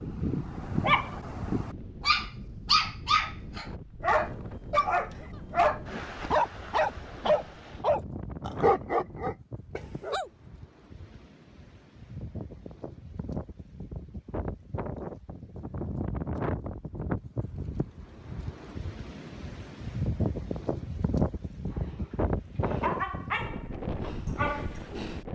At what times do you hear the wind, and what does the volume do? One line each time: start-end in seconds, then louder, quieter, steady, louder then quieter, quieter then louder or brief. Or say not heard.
0.0-25.3 louder.